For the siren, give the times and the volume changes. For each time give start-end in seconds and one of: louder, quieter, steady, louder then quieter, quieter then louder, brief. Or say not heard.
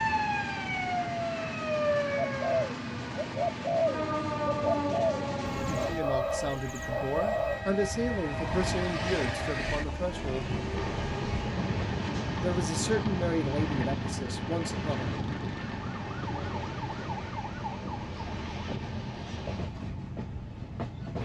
0.0-21.2 quieter.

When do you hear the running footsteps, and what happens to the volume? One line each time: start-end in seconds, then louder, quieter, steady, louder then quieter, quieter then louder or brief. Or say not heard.
not heard.